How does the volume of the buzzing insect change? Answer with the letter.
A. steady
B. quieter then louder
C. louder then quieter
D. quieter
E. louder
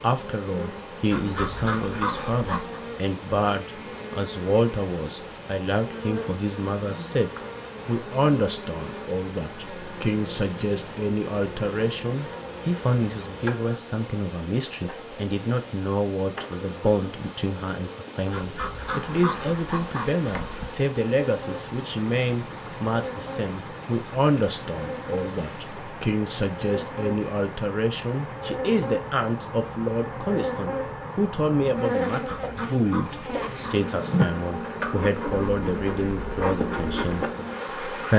E.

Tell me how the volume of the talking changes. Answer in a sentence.
The loudness of the talking stays about the same.